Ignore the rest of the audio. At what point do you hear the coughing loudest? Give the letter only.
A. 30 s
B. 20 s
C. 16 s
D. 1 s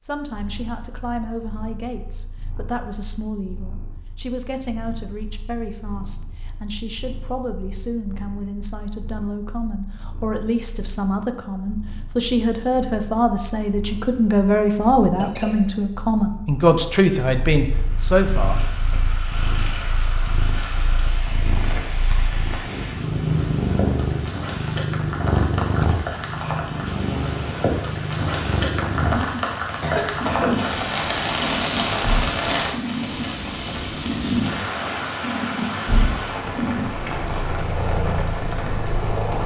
A.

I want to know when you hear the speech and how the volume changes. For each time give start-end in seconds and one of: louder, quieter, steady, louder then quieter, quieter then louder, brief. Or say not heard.
0.0-19.0 louder.